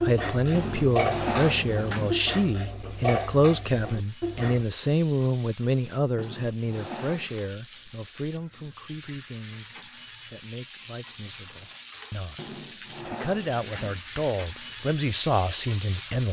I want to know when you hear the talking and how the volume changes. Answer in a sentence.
You can hear the talking from 0.0 to 16.2 s, getting quieter then louder.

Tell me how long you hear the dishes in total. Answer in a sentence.
The dishes can be heard for 5 seconds in total.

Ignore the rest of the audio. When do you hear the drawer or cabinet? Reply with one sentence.
You can hear the drawer or cabinet from 0.5 to 2.2 s, from 6.2 to 7.4 s and from 12.3 to 14.1 s.